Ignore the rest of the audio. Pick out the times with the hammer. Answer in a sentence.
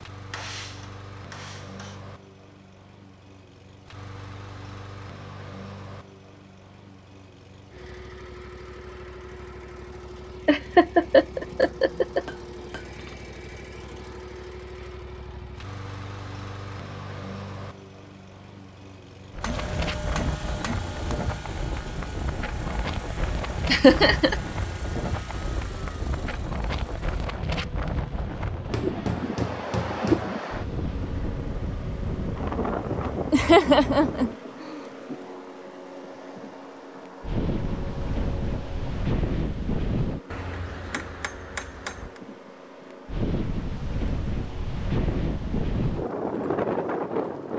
The hammer can be heard from 0.3 to 2.0 s, from 11.3 to 13.2 s, from 19.4 to 20.9 s, from 28.6 to 30.4 s and from 40.3 to 42.2 s.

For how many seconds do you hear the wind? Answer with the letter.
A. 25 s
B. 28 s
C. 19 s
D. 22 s
B.